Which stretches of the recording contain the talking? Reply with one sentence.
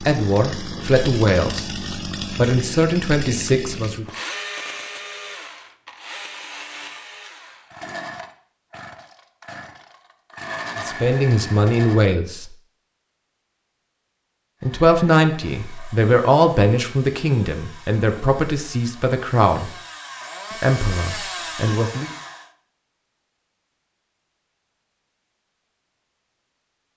You can hear the talking from 0.0 to 4.0 s, from 10.8 to 12.5 s, from 14.6 to 19.7 s and from 20.5 to 22.1 s.